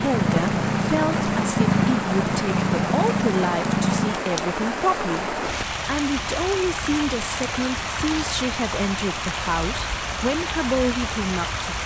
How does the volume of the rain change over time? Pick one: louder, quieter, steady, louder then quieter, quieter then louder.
steady.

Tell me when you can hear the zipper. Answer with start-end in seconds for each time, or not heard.
not heard.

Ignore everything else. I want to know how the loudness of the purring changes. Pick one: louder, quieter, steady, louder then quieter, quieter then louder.
steady.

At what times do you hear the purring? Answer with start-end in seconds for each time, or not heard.
0.0-4.2.